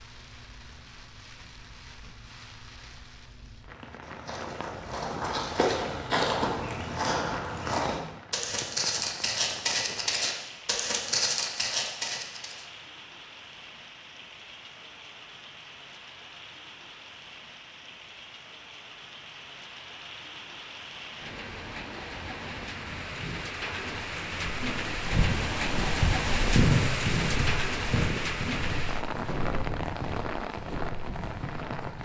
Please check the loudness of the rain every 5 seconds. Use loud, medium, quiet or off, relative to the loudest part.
quiet, quiet, quiet, quiet, medium, loud, medium.